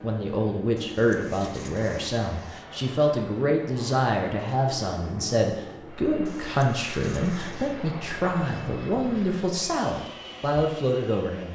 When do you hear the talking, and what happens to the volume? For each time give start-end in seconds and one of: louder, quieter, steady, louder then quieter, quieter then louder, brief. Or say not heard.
0.0-11.5 steady.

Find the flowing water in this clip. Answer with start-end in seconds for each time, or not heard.
not heard.